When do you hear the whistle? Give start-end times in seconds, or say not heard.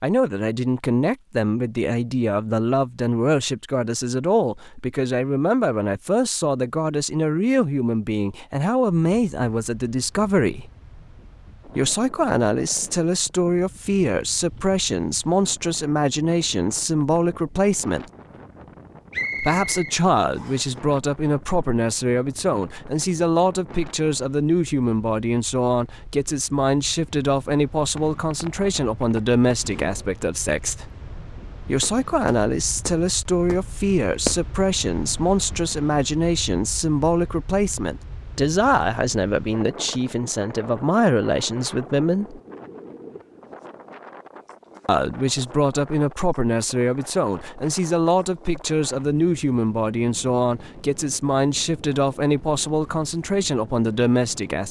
19.1-20.7.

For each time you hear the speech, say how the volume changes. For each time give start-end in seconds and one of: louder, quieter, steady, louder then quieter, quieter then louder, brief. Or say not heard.
0.0-10.7 steady
11.7-18.1 steady
19.4-30.9 steady
31.6-42.4 steady
44.9-54.6 steady.